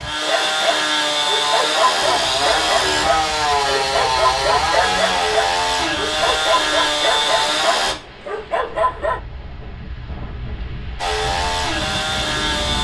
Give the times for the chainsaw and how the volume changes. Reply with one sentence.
The chainsaw can be heard from 0.0 to 8.0 s, at a steady volume; and briefly from 10.9 to 12.8 s.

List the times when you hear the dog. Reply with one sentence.
You can hear the dog from 0.2 to 9.2 s.